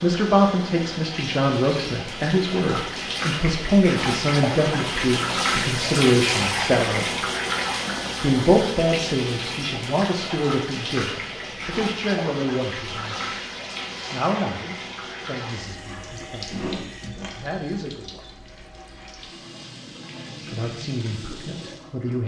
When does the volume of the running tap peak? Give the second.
6 s.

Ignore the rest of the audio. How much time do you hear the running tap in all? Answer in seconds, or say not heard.
22 s.